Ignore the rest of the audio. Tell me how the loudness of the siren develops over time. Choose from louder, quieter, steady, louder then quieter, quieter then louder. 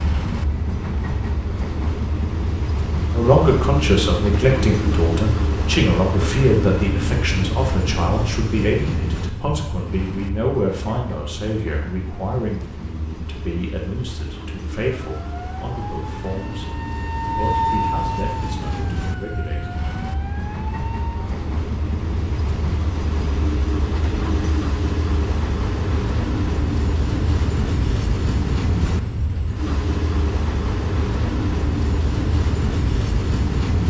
louder then quieter.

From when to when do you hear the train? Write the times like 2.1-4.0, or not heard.
0.0-33.8.